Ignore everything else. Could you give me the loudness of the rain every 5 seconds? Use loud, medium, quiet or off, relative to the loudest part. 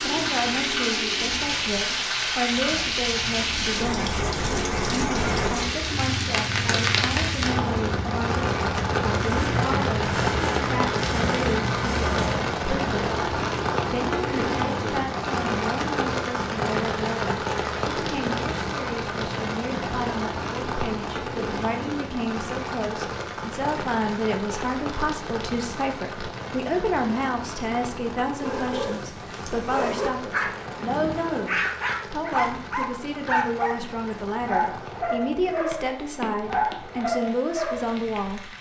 loud, loud, loud, loud, medium, medium, quiet, quiet.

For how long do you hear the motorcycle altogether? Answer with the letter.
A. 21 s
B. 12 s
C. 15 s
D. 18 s
B.